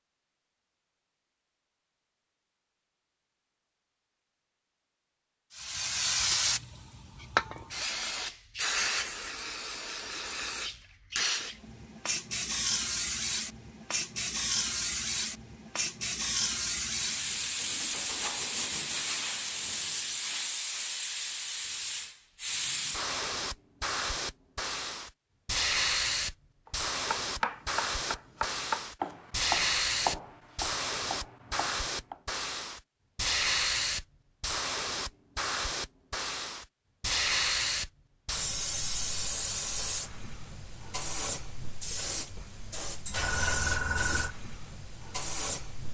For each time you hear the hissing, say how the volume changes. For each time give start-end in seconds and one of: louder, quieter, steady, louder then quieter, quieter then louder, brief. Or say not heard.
5.5-45.8 steady.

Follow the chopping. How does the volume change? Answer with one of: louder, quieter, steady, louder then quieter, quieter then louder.
quieter.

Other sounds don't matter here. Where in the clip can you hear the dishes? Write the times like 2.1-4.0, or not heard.
not heard.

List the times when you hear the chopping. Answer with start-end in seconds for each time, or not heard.
26.6-32.2.